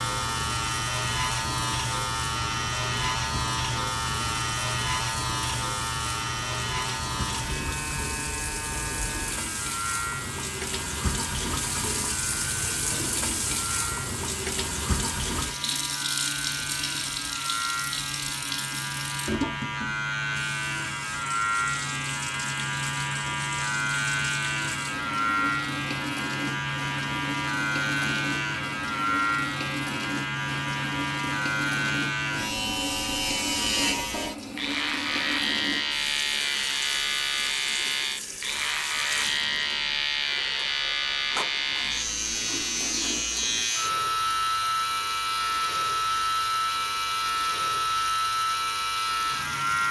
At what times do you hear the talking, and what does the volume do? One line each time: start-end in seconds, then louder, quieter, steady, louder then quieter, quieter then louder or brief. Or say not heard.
not heard.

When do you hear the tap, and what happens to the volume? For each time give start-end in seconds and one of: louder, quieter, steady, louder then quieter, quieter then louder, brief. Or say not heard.
0.0-49.8 louder then quieter.